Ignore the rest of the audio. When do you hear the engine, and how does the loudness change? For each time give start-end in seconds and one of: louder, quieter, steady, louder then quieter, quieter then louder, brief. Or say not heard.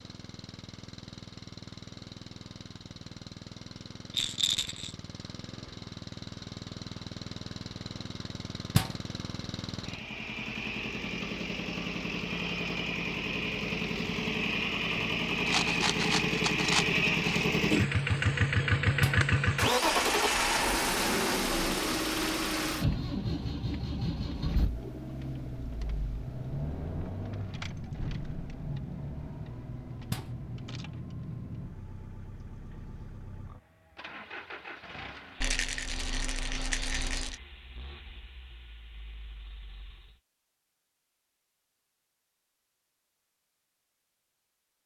0.0-40.2 louder then quieter.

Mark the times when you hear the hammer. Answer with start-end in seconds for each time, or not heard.
not heard.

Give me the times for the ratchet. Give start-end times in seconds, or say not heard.
not heard.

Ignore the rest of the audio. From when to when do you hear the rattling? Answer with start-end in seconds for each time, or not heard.
4.1-5.0, 15.4-17.4, 35.4-37.4.